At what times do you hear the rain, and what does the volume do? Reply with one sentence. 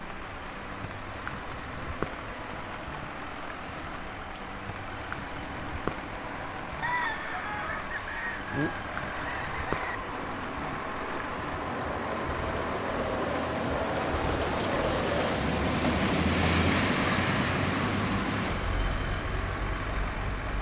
You can hear the rain from 0.0 to 20.5 s, getting louder.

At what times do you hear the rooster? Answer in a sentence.
You can hear the rooster from 6.8 to 9.9 s.